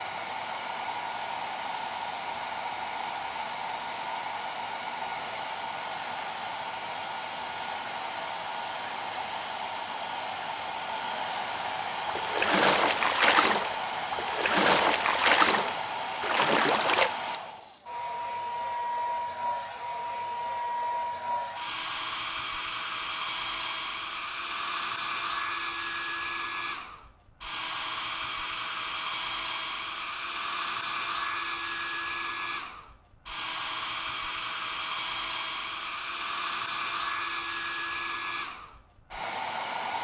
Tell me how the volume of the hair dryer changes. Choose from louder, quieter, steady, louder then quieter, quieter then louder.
steady.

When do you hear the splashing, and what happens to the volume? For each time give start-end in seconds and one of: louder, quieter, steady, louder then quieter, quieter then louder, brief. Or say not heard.
12.1-17.1 steady.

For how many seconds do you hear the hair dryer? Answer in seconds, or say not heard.
40 s.